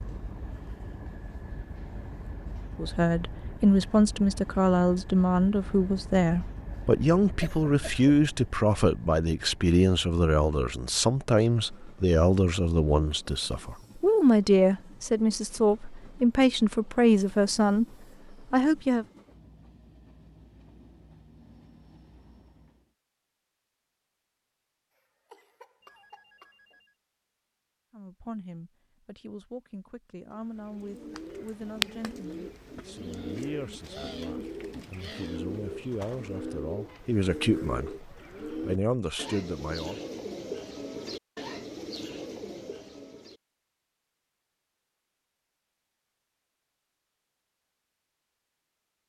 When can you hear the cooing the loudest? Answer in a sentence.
The volume of the cooing peaks at 32 seconds.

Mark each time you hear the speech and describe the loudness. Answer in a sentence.
You can hear the speech from 2.8 to 17.9 s, at a steady volume; briefly from 18.5 to 19.1 s; and from 27.9 to 40.0 s, getting louder.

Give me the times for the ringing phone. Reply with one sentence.
The ringing phone can be heard from 25.8 to 26.9 s.